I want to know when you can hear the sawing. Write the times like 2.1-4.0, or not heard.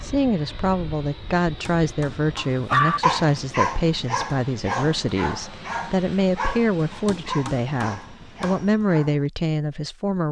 not heard.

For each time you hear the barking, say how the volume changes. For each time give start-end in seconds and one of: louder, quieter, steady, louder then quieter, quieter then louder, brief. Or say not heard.
2.4-9.2 quieter.